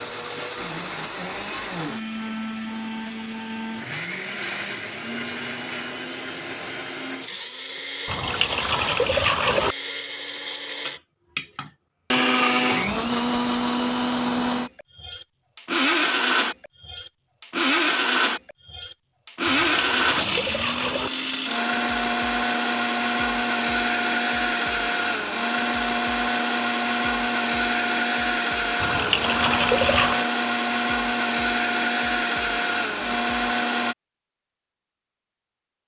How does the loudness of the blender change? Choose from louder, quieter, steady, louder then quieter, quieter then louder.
louder.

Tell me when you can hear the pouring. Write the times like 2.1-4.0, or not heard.
8.1-9.8, 19.4-21.1, 28.8-30.2.